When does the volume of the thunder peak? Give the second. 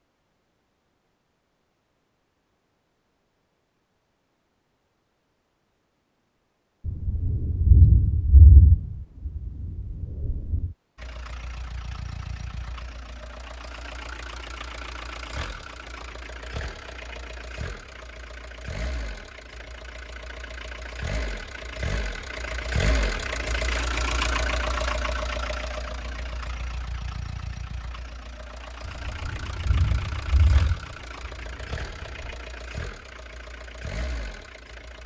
8 s.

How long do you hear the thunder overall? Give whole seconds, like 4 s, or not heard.
7 s.